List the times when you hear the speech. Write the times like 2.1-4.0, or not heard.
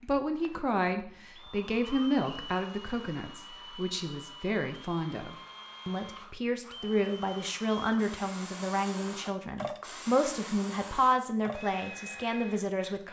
0.0-13.0.